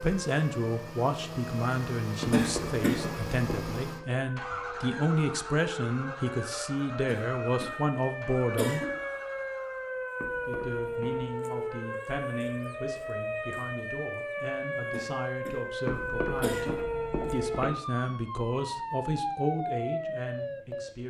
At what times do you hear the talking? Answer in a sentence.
The talking can be heard from 0.0 to 8.9 s and from 10.4 to 21.0 s.